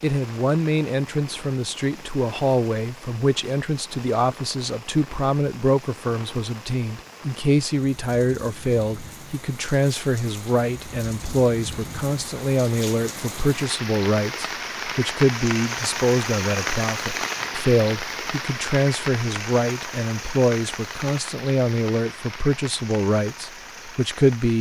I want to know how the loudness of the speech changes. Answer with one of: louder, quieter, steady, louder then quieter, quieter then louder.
steady.